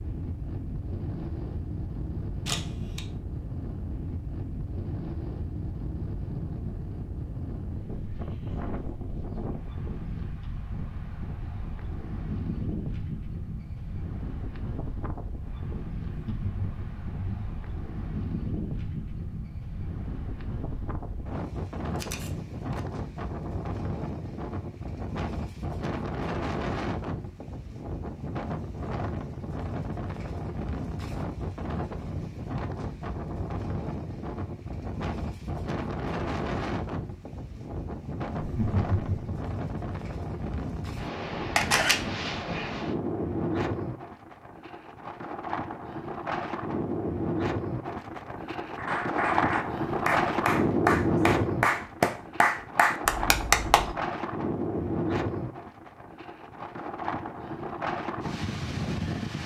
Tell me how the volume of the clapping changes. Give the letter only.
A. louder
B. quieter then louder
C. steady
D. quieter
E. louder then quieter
A.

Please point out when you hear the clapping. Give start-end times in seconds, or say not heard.
48.8-54.0.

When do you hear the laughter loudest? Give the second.
39 s.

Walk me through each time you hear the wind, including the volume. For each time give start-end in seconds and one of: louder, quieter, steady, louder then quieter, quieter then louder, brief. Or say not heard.
0.0-59.4 louder.